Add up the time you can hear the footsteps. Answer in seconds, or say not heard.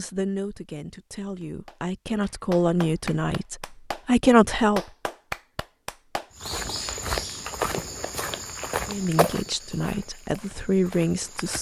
5 s.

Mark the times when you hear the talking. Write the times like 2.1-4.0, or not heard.
0.0-4.8, 8.8-11.5.